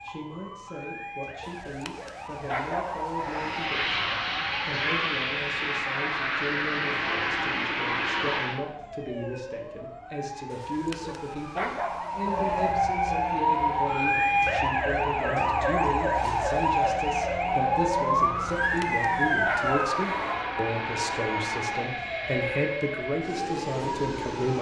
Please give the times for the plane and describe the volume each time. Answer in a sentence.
You can hear the plane from 3.1 to 8.6 s, at a steady volume; and from 13.2 to 24.5 s, getting louder.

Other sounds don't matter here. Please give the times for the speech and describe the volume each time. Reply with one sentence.
You can hear the speech from 0.0 to 24.5 s, getting louder.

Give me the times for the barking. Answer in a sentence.
The barking can be heard from 1.4 to 3.5 s, from 10.5 to 12.7 s and from 18.6 to 20.4 s.